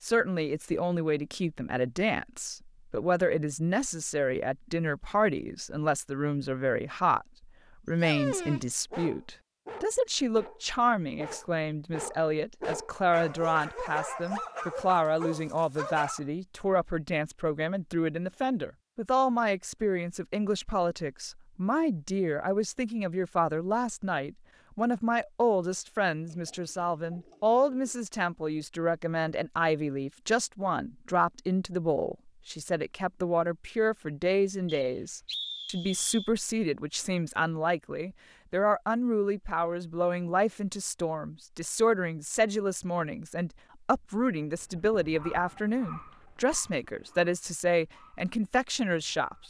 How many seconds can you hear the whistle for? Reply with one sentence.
The whistle can be heard for 2 seconds in total.